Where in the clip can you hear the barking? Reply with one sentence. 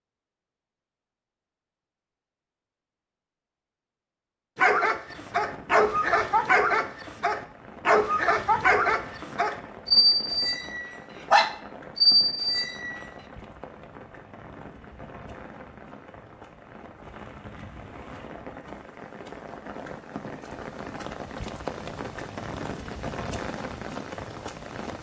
You can hear the barking from 4.5 to 13.0 s.